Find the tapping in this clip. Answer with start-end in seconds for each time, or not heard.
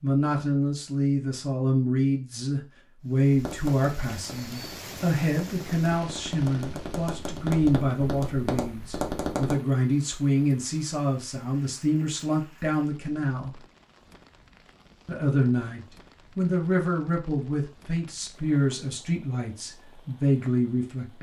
3.3-9.6.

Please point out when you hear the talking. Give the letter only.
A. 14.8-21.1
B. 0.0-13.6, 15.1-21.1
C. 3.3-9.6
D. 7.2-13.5
B.